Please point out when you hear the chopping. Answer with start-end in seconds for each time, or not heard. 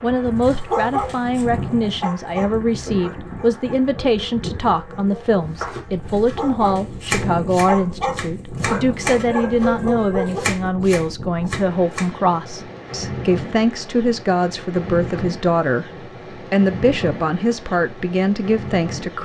5.5-12.1.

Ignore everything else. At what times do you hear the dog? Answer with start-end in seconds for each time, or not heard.
0.2-10.4.